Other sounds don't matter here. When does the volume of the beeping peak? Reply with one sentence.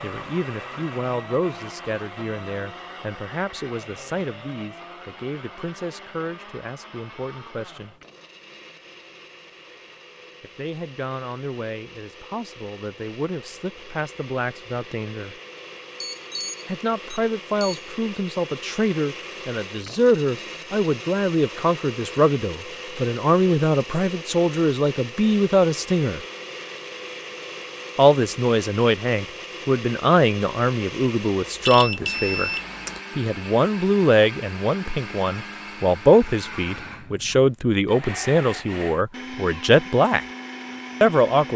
The loudest moment of the beeping is at 32 seconds.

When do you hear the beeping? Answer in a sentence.
You can hear the beeping from 16.0 to 17.9 s and from 31.6 to 33.0 s.